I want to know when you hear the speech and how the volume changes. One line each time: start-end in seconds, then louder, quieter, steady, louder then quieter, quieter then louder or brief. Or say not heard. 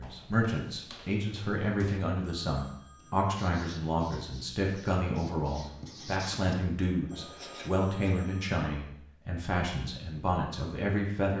0.0-11.3 steady.